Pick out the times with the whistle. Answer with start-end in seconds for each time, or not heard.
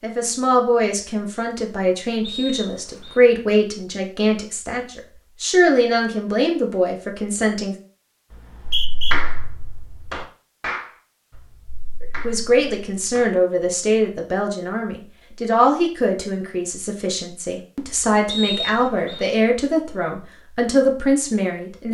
2.2-3.2, 8.3-9.2, 18.2-19.2.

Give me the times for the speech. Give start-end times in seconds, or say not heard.
0.0-7.8, 12.2-21.8.